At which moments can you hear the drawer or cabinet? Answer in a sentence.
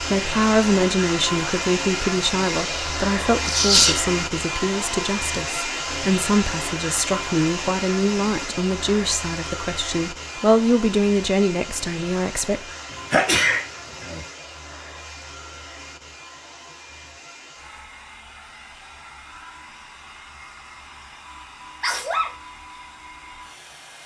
You can't hear the drawer or cabinet here.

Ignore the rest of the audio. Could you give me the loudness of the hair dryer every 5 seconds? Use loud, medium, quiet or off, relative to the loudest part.
loud, loud, medium, quiet, quiet.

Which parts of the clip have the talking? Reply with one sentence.
You can hear the talking from 0.0 to 12.7 s.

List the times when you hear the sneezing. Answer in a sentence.
You can hear the sneezing from 2.5 to 4.0 s, from 13.1 to 14.2 s and from 21.8 to 22.3 s.